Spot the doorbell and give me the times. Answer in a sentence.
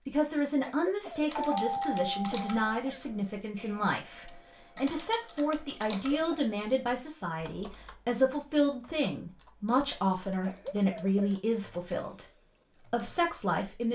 The doorbell can be heard from 1.4 to 2.6 s.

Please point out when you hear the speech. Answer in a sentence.
The speech can be heard from 0.1 to 13.9 s.